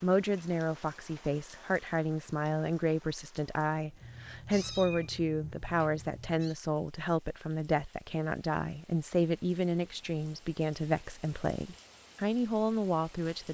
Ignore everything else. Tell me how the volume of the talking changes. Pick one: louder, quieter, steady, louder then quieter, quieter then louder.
steady.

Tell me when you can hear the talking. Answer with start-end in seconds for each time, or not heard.
0.0-13.4.